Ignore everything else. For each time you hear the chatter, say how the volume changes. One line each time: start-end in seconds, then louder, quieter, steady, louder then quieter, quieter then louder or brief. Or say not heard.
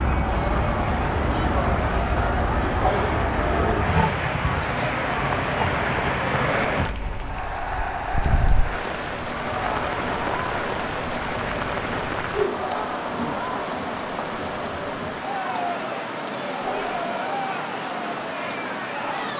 0.1-19.3 steady.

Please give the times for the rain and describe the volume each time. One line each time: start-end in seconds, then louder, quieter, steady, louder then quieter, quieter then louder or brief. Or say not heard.
0.0-19.3 quieter.